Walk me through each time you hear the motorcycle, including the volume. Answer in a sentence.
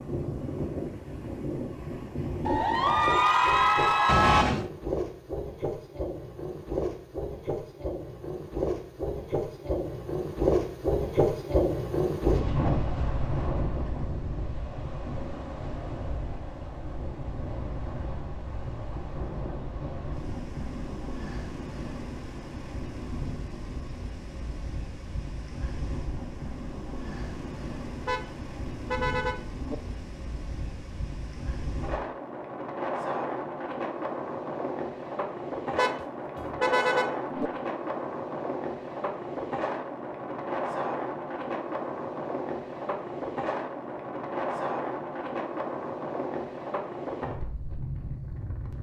You can't hear the motorcycle here.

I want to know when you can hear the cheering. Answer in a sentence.
The cheering can be heard from 2.5 to 4.5 s.